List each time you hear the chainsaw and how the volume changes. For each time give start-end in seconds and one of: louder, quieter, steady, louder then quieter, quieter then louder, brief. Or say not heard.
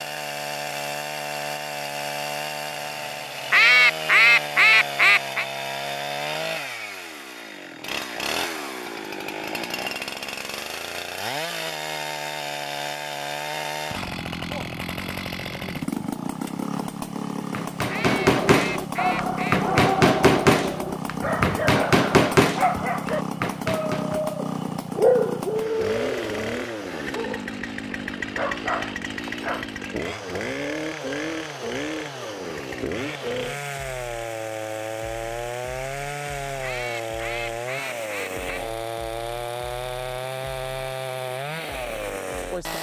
0.0-42.7 steady.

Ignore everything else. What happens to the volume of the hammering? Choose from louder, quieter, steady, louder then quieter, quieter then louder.
quieter.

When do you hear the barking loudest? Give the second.
25 s.